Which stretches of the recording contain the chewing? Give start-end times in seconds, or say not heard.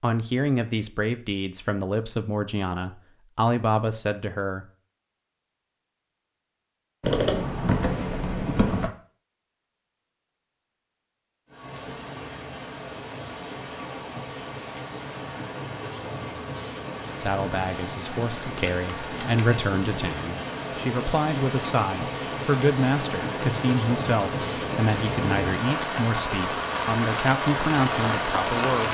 not heard.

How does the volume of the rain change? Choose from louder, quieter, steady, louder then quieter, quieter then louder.
louder.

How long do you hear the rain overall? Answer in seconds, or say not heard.
17 s.